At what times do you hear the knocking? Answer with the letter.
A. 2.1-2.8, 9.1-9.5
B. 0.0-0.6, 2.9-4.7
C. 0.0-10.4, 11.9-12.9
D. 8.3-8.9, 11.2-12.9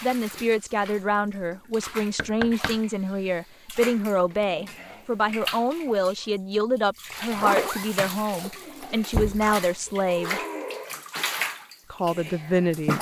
A.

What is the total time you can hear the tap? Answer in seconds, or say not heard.
13 s.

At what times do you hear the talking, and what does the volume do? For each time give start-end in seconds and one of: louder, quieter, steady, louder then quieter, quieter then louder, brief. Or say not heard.
0.0-10.4 steady
11.9-12.9 brief.